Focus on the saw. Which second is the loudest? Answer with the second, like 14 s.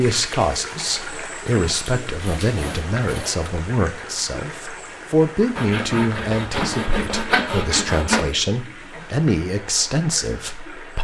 7 s.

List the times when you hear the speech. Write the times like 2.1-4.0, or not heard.
0.0-10.9.